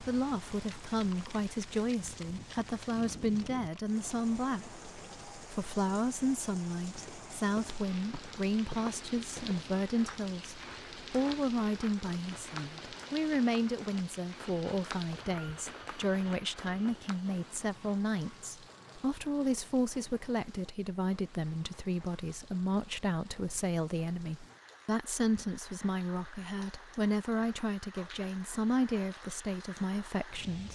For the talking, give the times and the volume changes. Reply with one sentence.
The talking can be heard from 0.0 to 30.6 s, at a steady volume.